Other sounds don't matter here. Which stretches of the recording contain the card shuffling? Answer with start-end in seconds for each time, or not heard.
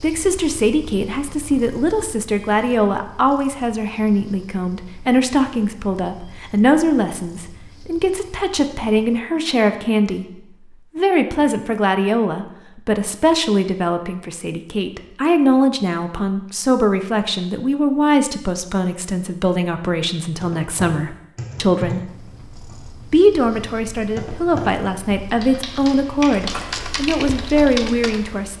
26.4-26.9.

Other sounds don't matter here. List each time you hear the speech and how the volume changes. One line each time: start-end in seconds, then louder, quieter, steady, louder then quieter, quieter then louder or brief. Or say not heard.
0.0-22.1 steady
23.1-28.5 louder.